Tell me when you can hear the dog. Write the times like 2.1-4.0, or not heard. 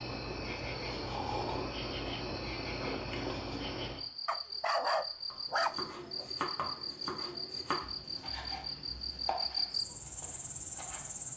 4.2-6.2.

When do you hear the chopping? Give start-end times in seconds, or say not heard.
5.3-11.2.